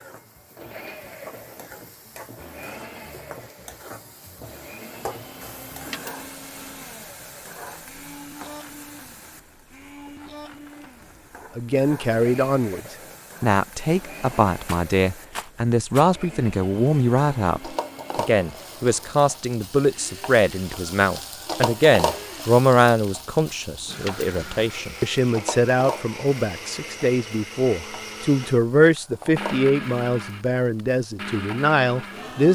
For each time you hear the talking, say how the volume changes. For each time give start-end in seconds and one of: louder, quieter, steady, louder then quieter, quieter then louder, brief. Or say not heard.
11.6-12.8 brief
13.4-32.5 steady.